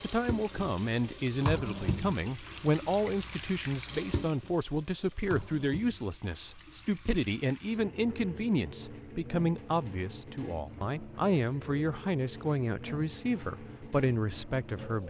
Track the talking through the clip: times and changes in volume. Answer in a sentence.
You can hear the talking from 0.0 to 15.0 s, at a steady volume.